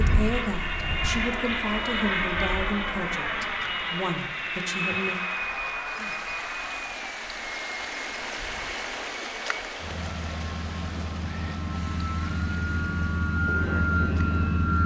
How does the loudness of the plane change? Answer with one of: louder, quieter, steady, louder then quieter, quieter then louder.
quieter then louder.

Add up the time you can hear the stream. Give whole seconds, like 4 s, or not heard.
15 s.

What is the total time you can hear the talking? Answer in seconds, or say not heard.
5 s.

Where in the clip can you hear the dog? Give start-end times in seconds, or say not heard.
not heard.